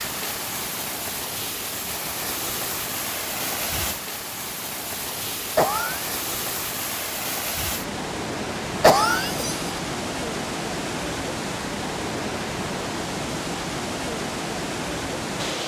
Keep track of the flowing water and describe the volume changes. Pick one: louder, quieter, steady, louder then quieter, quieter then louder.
steady.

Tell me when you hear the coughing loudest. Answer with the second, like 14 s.
9 s.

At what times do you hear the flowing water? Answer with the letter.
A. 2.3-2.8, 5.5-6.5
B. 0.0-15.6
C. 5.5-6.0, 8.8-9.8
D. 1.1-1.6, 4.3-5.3
B.